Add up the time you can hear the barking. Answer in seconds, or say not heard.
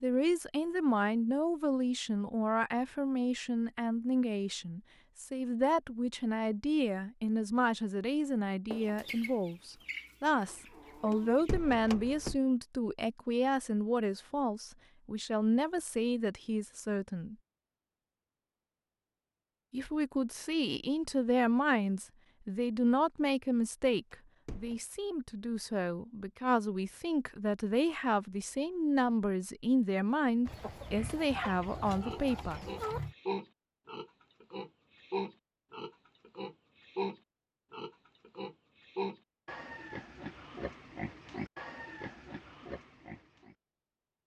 not heard.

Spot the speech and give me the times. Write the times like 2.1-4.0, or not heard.
0.0-17.4, 19.7-32.6.